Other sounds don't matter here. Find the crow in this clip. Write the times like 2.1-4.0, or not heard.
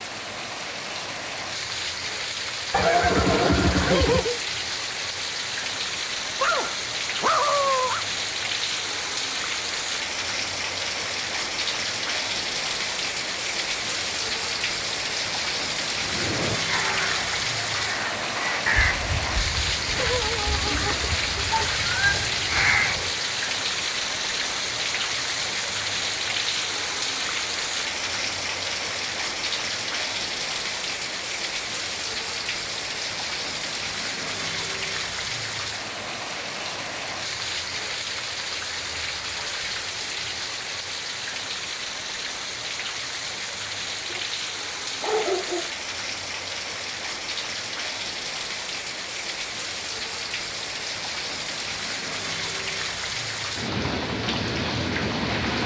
16.1-23.2.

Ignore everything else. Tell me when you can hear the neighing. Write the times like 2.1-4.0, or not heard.
2.7-4.4.